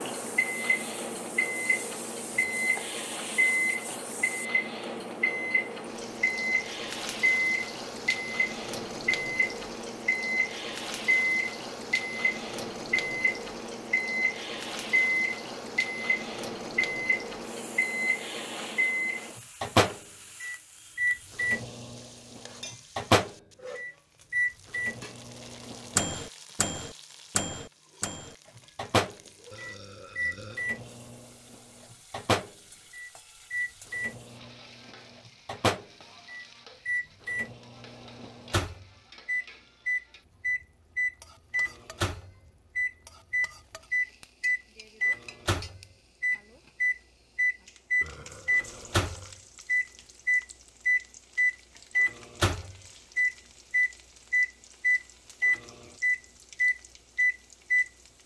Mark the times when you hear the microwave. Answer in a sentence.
The microwave can be heard from 0.0 to 58.2 s.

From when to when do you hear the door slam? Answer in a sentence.
The door slam can't be heard in this clip.